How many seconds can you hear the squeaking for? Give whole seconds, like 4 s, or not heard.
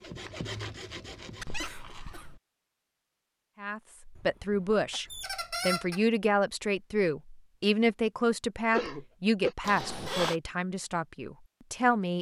3 s.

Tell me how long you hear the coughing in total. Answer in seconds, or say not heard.
3 s.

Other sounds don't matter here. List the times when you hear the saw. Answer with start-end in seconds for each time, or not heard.
0.0-1.7.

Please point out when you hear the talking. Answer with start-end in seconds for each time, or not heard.
3.6-12.1.